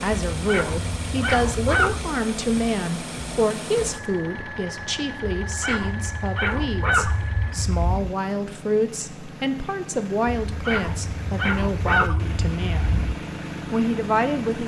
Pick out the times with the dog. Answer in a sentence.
You can hear the dog from 0.3 to 2.0 s, from 5.5 to 8.2 s and from 10.4 to 13.2 s.